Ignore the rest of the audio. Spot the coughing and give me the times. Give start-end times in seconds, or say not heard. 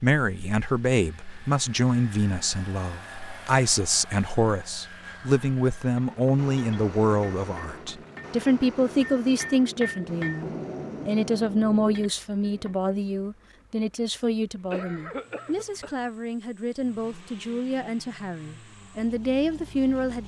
14.7-15.9.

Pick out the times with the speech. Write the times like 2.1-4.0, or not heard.
0.0-20.2.